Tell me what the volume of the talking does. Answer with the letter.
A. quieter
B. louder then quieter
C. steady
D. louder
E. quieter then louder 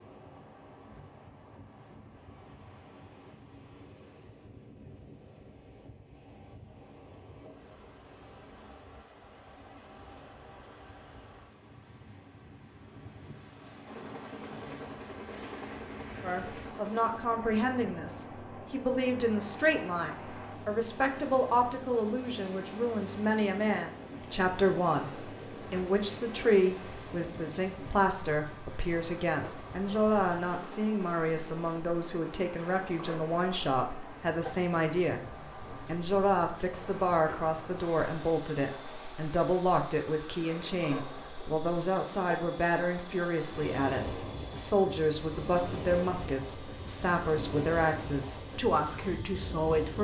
C.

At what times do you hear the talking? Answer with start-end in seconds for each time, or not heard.
16.2-49.9.